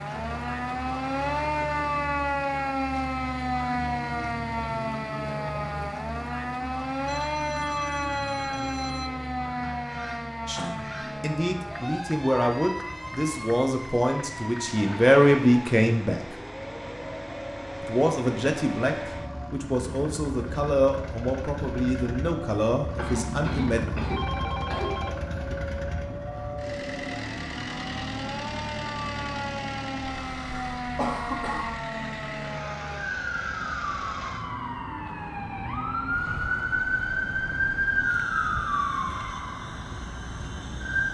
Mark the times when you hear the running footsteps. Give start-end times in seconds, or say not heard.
not heard.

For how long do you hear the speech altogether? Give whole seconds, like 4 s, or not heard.
12 s.